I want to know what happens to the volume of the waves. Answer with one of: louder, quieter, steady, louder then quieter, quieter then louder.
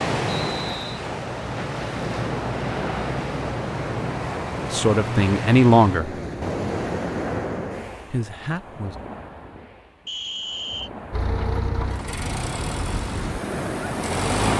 quieter then louder.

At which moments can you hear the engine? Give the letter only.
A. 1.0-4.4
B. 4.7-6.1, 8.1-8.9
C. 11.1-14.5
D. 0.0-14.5
C.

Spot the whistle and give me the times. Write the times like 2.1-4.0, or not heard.
0.3-1.1, 10.1-10.9.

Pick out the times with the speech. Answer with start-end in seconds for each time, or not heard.
4.7-6.1, 8.1-8.9.